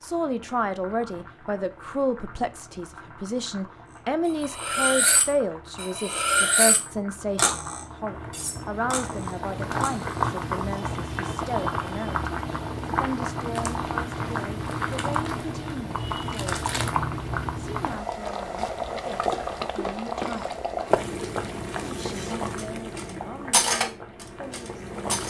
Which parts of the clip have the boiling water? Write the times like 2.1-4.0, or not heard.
0.0-25.2.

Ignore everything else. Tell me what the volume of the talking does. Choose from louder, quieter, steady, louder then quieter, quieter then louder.
quieter.